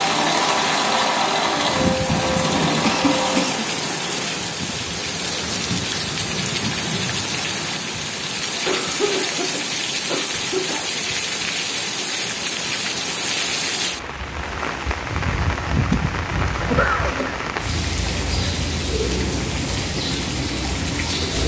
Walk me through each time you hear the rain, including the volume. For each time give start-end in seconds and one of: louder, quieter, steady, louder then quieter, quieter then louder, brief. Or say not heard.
0.0-21.4 steady.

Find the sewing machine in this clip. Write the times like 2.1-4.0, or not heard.
0.0-3.6.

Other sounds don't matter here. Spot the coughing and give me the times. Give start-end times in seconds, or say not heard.
2.8-3.6, 8.7-10.8, 16.6-17.4.